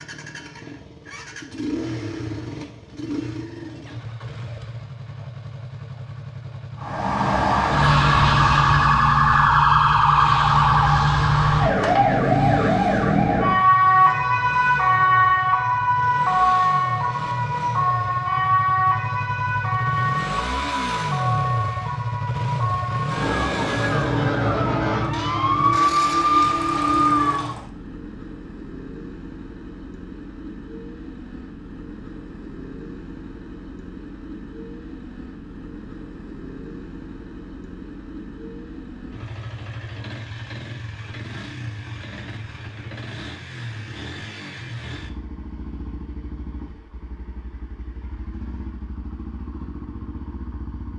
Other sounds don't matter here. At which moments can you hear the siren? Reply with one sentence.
The siren can be heard from 6.8 to 27.5 s.